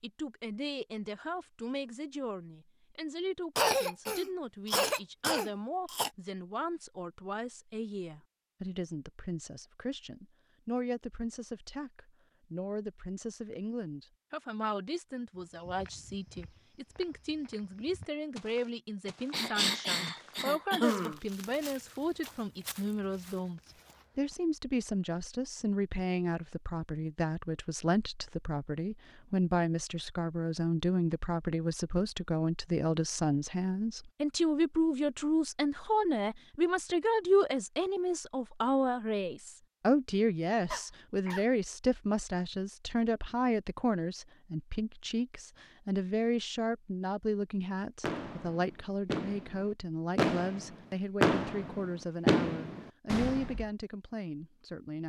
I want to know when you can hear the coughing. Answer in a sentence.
The coughing can be heard from 3.5 to 6.1 s, from 19.3 to 21.2 s and from 40.7 to 41.5 s.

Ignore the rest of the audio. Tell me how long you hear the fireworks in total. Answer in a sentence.
The fireworks can be heard for 6 seconds in total.